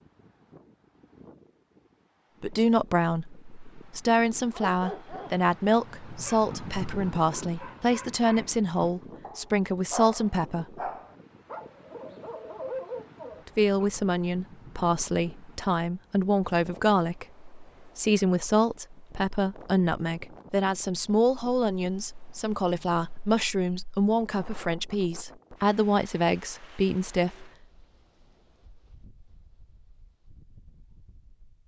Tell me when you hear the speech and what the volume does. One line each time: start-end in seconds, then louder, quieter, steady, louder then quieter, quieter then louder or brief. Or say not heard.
2.4-10.8 steady
13.4-27.5 steady.